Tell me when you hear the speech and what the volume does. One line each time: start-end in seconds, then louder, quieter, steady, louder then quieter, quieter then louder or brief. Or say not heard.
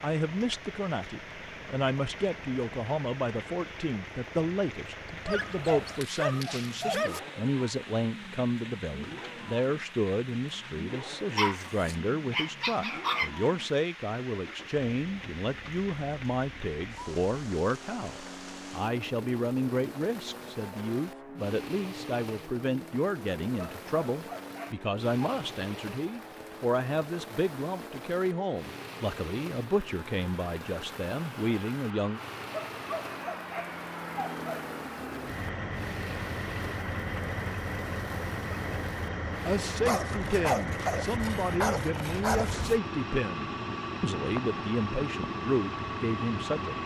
0.0-32.2 steady
39.5-46.8 steady.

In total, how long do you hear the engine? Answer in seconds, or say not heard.
47 s.